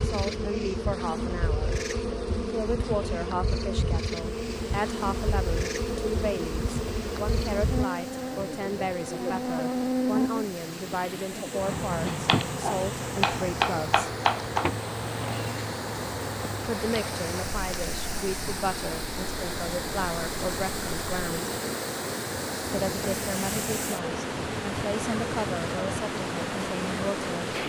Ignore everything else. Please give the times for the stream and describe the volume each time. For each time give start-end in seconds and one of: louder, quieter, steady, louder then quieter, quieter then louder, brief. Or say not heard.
4.2-27.6 louder.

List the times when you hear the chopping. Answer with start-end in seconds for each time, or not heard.
12.1-14.7.